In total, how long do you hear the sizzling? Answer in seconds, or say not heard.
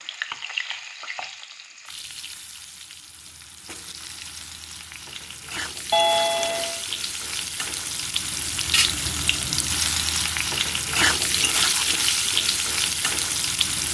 14 s.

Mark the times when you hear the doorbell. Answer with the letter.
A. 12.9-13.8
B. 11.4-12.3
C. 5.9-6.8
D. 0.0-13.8
C.